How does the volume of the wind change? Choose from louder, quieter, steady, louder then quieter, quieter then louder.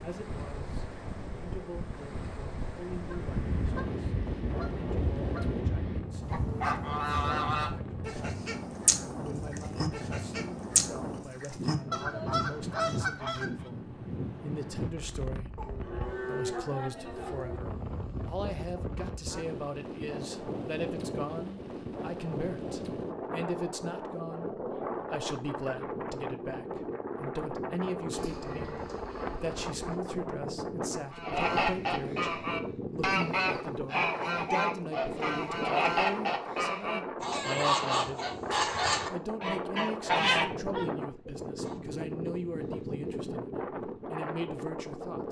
steady.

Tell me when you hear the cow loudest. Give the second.
16 s.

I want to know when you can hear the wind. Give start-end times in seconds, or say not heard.
0.0-45.2.